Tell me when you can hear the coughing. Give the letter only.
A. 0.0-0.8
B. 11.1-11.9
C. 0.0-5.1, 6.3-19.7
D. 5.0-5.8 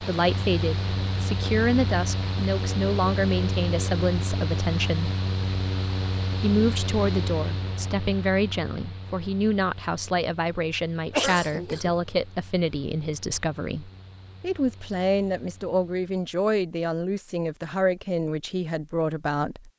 B.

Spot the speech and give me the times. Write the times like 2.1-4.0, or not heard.
0.0-5.1, 6.3-19.7.